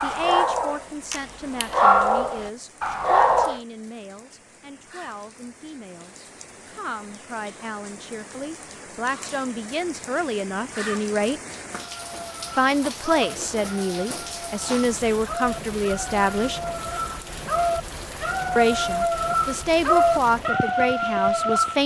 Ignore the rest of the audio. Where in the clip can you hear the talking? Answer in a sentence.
You can hear the talking from 0.0 to 11.4 s, from 12.6 to 16.6 s and from 18.6 to 21.8 s.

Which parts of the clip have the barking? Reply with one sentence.
The barking can be heard from 0.0 to 3.6 s and from 11.9 to 21.8 s.